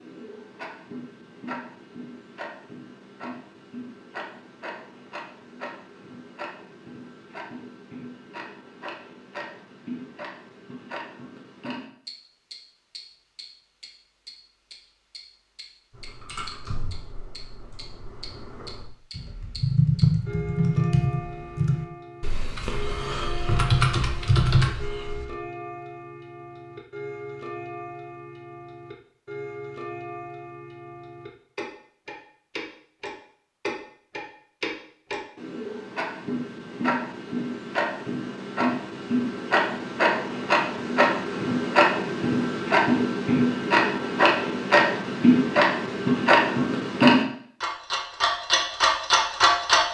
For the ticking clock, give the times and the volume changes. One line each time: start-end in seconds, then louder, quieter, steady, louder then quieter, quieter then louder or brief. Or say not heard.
0.0-49.8 louder.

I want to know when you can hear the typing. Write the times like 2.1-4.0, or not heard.
15.9-25.3.